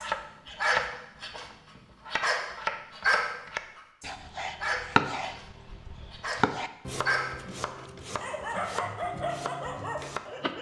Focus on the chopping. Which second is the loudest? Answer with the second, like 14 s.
5 s.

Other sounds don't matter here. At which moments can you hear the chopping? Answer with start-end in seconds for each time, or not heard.
0.0-10.5.